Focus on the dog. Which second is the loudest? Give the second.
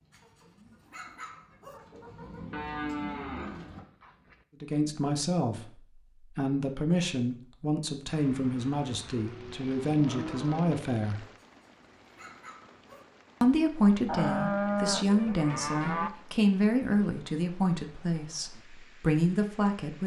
1 s.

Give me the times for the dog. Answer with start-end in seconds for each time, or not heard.
0.1-1.8, 11.3-13.1.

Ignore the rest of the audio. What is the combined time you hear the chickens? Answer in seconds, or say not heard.
4 s.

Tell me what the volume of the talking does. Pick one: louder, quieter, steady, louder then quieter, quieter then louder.
steady.